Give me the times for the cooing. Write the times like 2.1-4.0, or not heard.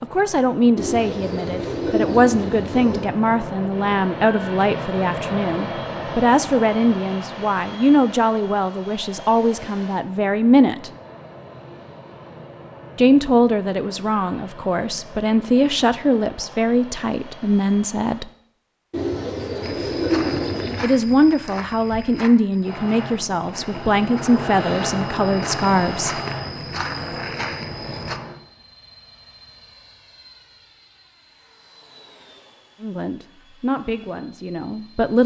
0.8-3.0, 18.9-20.9.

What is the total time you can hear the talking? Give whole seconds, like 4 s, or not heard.
24 s.